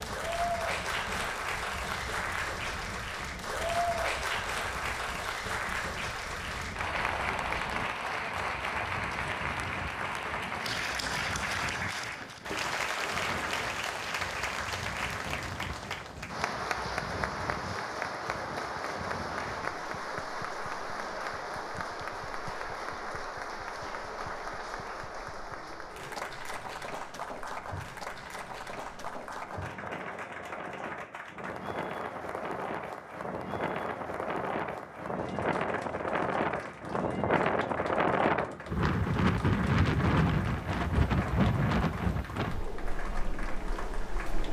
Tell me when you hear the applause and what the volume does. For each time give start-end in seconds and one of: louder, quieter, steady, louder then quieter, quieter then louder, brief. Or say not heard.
0.0-44.4 quieter.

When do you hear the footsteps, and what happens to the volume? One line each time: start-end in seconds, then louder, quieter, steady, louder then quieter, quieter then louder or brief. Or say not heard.
not heard.